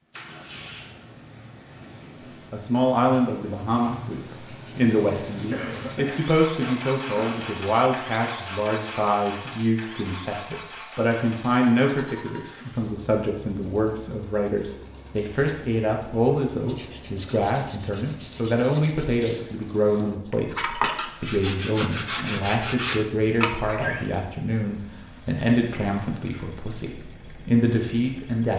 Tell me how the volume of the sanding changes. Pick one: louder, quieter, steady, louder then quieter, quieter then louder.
louder.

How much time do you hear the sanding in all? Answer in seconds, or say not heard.
7 s.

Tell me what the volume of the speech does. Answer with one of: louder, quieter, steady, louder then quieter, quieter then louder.
steady.